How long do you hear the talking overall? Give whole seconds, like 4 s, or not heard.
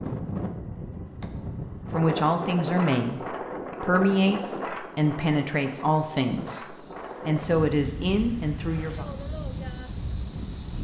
7 s.